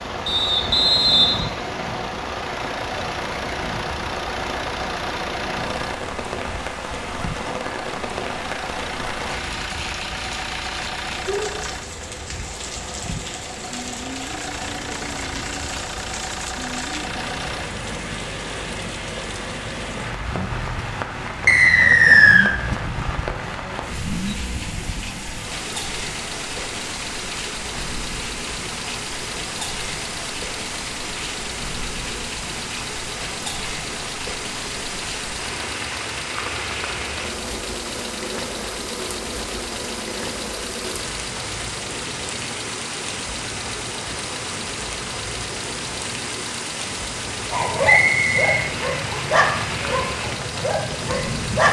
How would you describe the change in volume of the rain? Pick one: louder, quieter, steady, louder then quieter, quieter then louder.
steady.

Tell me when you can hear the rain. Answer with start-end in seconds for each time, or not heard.
0.0-51.6.